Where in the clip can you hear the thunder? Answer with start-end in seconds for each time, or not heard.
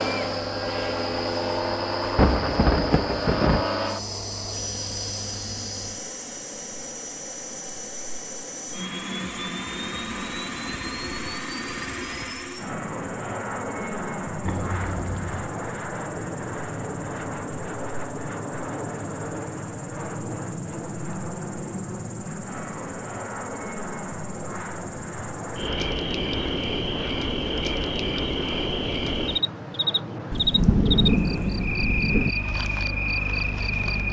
2.1-3.6, 30.3-32.4.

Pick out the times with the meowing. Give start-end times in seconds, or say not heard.
not heard.